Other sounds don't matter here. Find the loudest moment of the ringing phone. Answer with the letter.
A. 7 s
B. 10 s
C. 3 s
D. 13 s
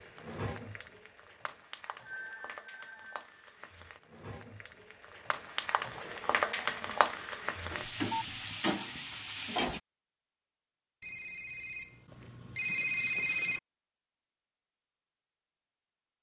D.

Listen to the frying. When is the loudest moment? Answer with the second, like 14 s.
7 s.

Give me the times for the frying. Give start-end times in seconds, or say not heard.
0.0-9.8.